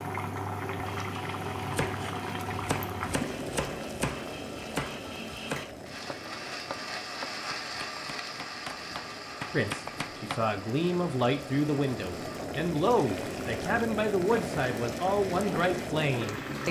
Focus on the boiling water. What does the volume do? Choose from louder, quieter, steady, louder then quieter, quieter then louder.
quieter then louder.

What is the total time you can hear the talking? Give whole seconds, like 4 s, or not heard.
7 s.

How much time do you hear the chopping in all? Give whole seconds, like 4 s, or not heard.
9 s.